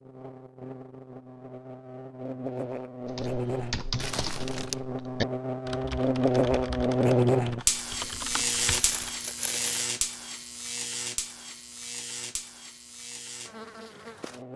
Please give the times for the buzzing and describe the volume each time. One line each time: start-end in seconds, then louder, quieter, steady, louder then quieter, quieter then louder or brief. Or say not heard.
0.0-14.5 louder then quieter.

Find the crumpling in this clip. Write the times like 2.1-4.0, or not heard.
4.0-4.8, 8.7-9.9.